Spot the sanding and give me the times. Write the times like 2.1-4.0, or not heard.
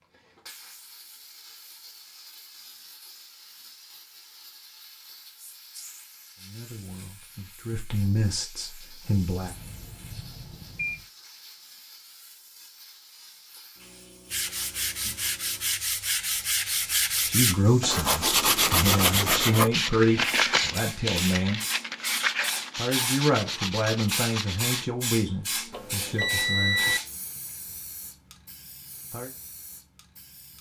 14.3-24.9.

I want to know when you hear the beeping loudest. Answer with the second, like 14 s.
27 s.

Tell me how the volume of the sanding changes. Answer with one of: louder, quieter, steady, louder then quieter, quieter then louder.
louder then quieter.